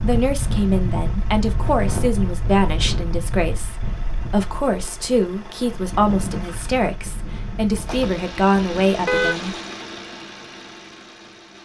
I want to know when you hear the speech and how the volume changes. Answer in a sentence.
You can hear the speech from 0.0 to 9.6 s, at a steady volume.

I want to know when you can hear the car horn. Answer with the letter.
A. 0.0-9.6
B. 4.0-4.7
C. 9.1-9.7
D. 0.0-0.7
C.